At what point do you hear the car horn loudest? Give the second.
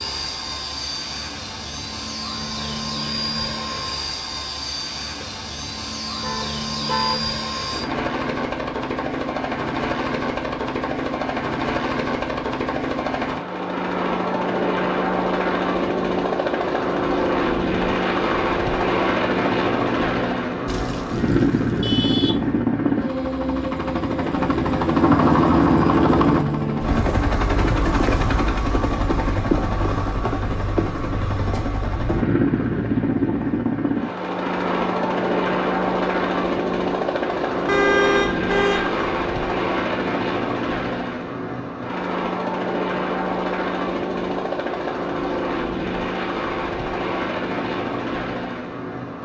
38 s.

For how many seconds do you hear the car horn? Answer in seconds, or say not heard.
4 s.